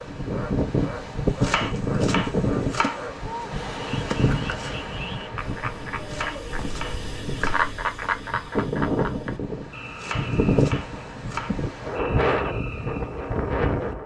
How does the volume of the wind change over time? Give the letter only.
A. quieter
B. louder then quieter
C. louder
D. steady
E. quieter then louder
E.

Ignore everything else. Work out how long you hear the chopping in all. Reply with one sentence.
The chopping can be heard for 5 seconds in total.